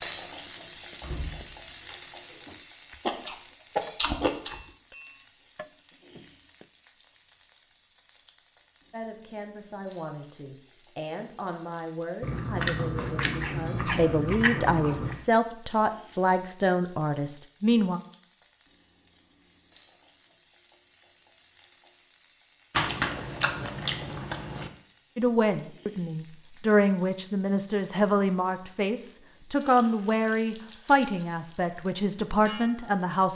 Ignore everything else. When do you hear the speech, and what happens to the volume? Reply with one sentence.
You can hear the speech from 8.9 to 18.0 s, getting louder; and from 25.1 to 33.3 s, at a steady volume.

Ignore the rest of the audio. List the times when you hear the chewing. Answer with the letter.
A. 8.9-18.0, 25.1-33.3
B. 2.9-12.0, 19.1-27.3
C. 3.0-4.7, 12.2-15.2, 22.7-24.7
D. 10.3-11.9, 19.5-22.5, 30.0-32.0
C.